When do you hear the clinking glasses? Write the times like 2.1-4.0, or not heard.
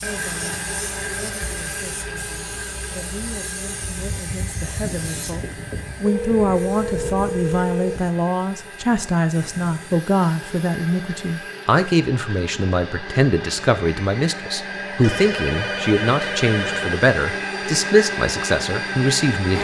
not heard.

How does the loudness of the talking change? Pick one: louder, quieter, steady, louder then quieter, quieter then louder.
louder.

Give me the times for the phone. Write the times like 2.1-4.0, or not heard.
6.0-8.1, 15.0-17.1.